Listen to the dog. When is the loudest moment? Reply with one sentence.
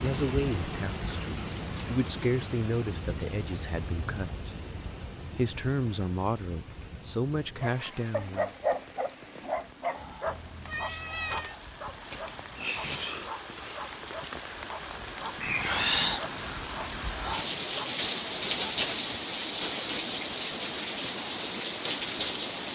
The loudest moment of the dog is at 9 seconds.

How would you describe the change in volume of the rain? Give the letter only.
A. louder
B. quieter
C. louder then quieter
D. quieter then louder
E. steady
D.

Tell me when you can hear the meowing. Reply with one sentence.
The meowing can be heard from 10.2 to 11.6 s.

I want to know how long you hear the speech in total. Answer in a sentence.
You can hear the speech for 8 seconds altogether.